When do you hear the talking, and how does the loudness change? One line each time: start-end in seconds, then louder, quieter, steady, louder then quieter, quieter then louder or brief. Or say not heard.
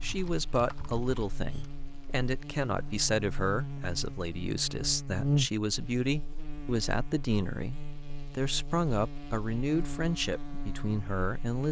0.0-11.6 steady.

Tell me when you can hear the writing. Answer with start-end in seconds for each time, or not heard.
not heard.